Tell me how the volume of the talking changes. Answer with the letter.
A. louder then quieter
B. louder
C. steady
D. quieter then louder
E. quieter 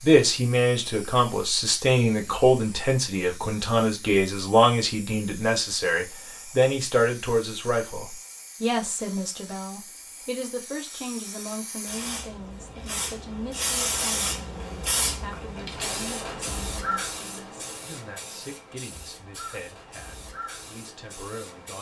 E.